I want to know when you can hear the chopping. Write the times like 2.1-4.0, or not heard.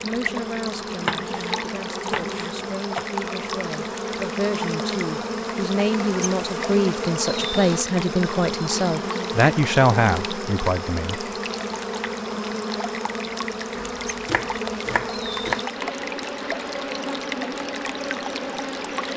1.0-3.0, 13.8-15.7.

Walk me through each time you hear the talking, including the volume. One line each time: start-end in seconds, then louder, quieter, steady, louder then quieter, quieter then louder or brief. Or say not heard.
0.0-11.2 louder.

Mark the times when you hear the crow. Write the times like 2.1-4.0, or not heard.
not heard.